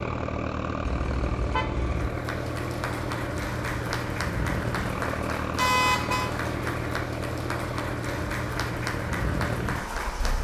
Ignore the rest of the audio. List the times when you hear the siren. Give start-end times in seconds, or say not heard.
not heard.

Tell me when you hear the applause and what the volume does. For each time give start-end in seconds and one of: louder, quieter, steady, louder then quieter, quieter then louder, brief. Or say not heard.
1.9-10.3 steady.